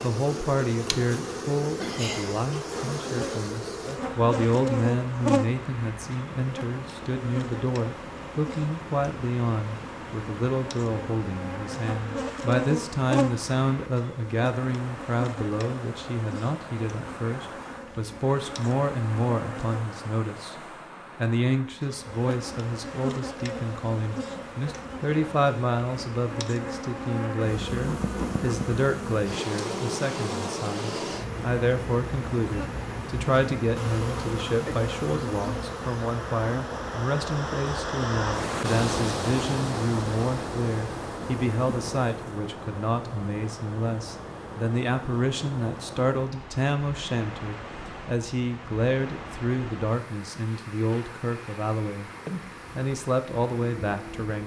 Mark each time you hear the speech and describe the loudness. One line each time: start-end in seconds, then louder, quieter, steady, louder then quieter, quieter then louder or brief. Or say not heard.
0.0-54.4 steady.